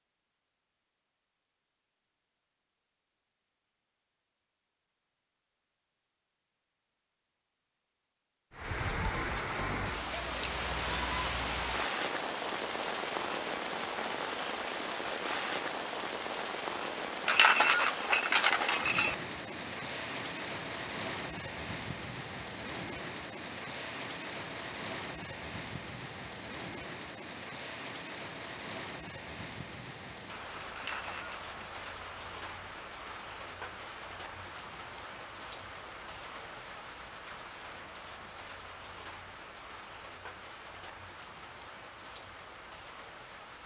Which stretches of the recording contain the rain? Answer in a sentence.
The rain can be heard from 8.5 to 43.6 s.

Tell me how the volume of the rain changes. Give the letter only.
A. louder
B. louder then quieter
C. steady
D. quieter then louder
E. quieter
E.